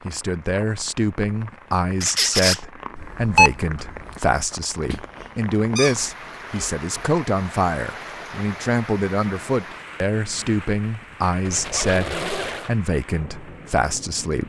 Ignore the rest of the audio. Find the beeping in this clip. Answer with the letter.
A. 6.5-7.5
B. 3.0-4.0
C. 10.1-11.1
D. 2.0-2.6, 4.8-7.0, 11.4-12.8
B.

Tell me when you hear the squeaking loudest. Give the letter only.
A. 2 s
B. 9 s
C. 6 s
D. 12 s
A.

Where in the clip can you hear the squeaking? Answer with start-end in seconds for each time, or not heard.
2.0-2.6, 4.8-7.0, 11.4-12.8.